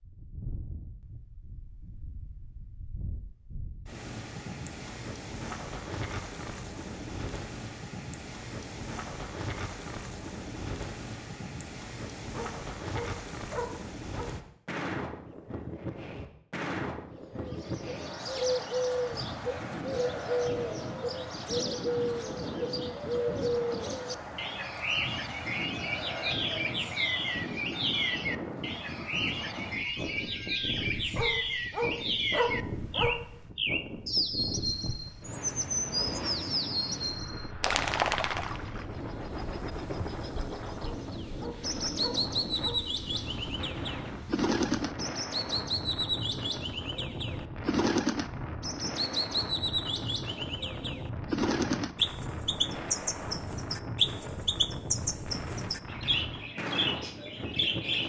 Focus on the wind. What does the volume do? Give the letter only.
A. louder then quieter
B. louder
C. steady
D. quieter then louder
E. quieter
C.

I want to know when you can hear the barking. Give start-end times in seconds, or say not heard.
12.3-14.3, 31.1-33.2, 40.8-42.9.